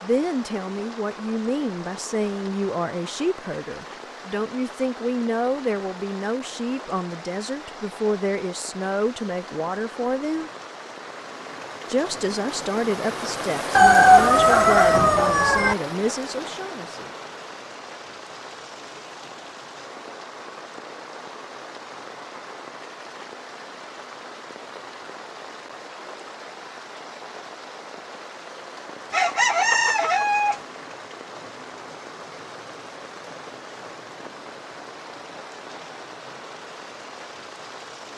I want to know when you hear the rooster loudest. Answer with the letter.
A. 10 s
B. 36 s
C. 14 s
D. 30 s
C.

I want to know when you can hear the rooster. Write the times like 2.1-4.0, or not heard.
13.8-15.8, 29.1-30.6.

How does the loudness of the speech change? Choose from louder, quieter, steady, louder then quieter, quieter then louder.
steady.